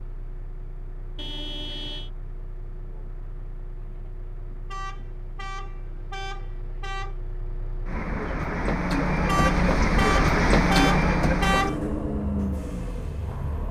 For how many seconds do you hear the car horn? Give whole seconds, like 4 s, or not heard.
6 s.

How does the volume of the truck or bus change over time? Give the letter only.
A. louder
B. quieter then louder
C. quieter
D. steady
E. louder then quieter
A.